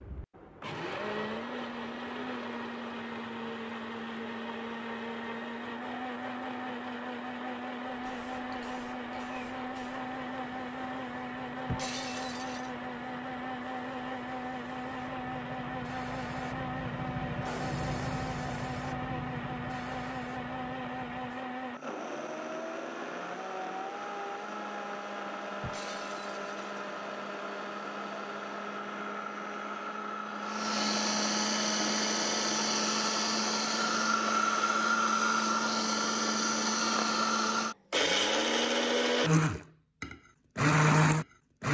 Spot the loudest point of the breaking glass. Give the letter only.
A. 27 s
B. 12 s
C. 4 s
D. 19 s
B.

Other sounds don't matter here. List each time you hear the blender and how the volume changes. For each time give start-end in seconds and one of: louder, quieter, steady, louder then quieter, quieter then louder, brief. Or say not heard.
0.0-41.6 louder.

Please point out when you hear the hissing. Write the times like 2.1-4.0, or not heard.
7.8-21.4.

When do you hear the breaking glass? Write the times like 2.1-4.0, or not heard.
11.7-12.7, 25.6-26.9.